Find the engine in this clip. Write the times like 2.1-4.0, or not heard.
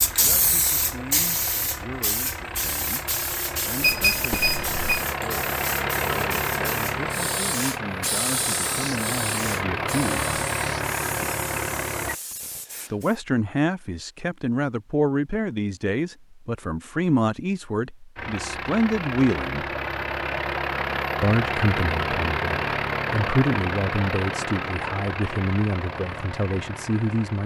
0.0-12.2, 18.1-27.4.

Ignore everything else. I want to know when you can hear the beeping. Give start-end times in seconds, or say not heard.
3.8-5.0.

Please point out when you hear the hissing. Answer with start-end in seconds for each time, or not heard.
0.0-13.2.